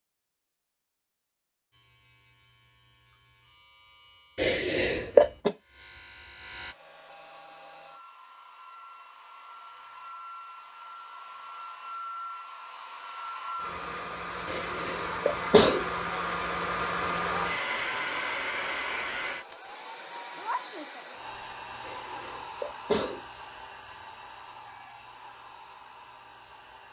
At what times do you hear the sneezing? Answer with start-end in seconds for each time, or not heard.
4.3-5.5, 14.4-15.8, 21.9-23.2.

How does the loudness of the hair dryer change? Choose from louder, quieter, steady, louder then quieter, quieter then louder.
louder then quieter.